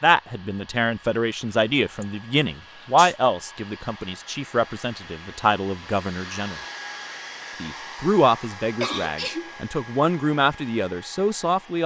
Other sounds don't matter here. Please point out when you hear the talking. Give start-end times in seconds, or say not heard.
0.0-6.5, 7.6-11.8.